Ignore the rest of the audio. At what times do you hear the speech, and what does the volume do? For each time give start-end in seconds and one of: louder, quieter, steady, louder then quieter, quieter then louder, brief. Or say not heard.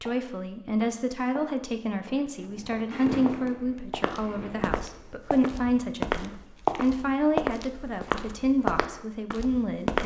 0.0-10.0 steady.